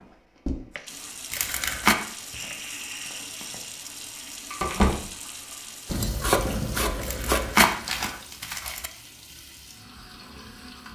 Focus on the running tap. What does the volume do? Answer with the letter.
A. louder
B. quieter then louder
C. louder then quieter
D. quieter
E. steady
C.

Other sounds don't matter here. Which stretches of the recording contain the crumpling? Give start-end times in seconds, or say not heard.
1.3-1.9, 7.0-8.9.